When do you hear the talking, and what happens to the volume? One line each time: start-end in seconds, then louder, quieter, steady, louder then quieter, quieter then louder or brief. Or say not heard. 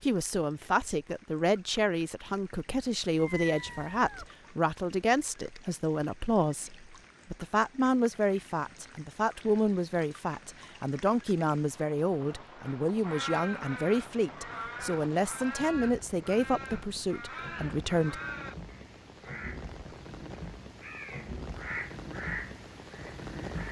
0.0-18.2 steady.